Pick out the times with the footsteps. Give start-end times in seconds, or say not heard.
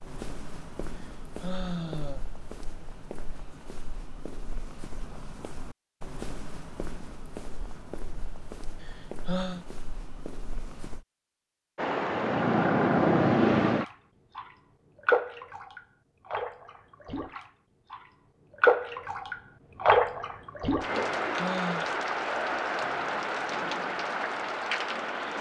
0.0-11.1.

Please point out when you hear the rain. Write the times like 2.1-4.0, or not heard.
11.8-25.3.